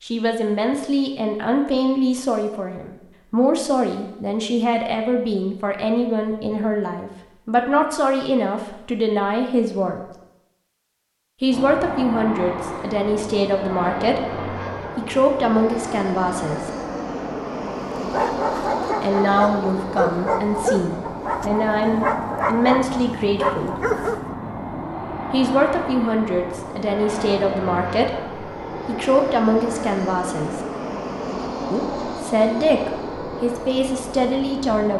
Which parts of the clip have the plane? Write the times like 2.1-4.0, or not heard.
11.5-34.9.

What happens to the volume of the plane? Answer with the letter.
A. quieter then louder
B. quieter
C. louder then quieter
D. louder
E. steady
E.